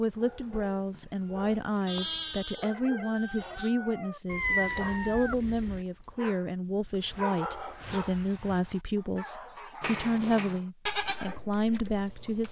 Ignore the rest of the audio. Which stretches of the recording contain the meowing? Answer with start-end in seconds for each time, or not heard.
0.1-1.6, 4.2-5.8, 9.8-10.6.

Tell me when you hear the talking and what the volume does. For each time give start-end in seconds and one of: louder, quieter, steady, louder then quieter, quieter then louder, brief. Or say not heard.
0.0-12.4 steady.